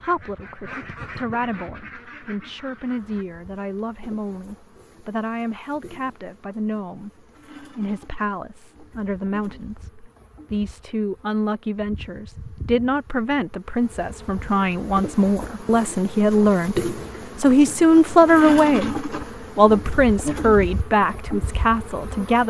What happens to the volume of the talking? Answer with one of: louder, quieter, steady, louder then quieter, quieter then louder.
louder.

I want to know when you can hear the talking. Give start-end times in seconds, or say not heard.
0.0-22.4.